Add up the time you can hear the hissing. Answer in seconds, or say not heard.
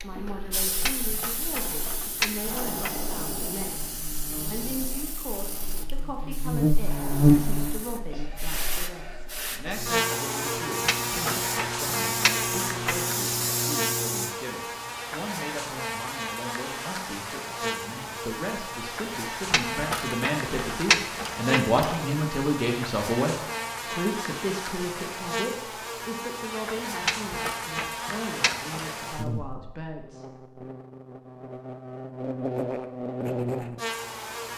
14 s.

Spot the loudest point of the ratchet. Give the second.
21 s.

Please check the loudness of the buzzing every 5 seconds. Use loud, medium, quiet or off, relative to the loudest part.
quiet, loud, medium, medium, medium, medium, medium.